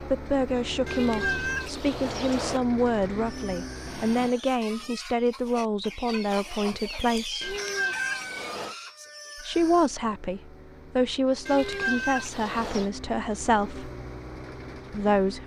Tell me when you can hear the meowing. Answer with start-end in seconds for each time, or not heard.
0.8-2.6, 7.4-8.8, 11.4-12.9.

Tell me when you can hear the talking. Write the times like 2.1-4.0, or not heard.
0.0-7.5, 9.4-13.9, 14.9-15.4.